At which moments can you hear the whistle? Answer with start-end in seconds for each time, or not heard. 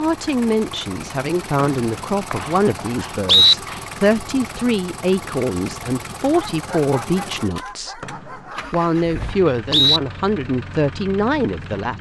1.6-3.5, 8.0-10.0.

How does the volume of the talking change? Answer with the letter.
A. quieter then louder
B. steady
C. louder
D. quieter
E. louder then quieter
B.